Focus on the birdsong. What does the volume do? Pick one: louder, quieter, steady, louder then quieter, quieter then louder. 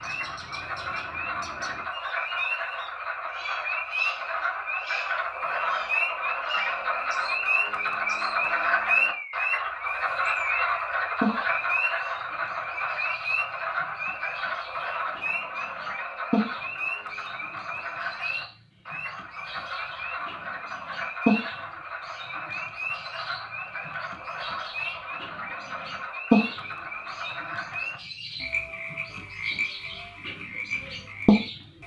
louder.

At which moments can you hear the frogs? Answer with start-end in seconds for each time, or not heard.
0.0-31.8.